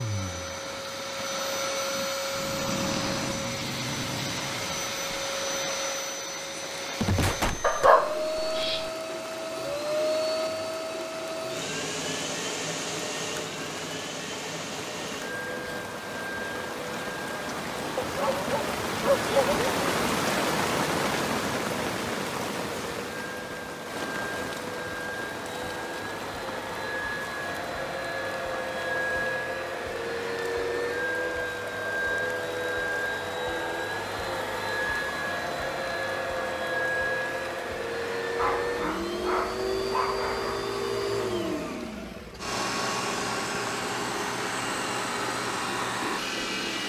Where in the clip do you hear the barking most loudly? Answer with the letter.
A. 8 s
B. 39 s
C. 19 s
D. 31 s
A.